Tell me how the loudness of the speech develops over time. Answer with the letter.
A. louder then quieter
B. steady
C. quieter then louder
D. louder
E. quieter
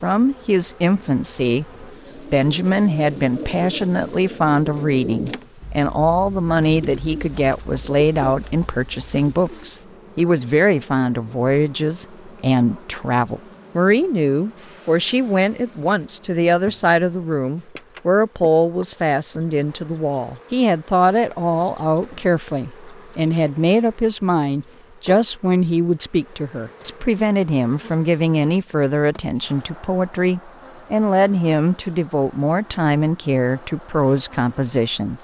B.